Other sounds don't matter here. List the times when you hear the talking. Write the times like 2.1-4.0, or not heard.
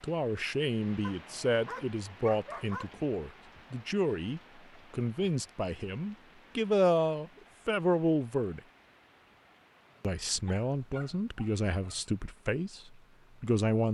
0.0-8.6, 10.0-13.8.